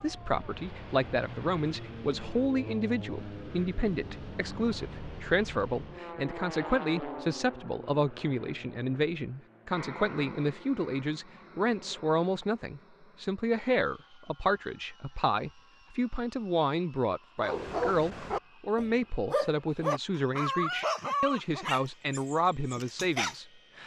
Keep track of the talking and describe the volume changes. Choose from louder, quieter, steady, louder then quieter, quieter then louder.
steady.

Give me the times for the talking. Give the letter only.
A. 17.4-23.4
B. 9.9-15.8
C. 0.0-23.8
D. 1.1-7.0
C.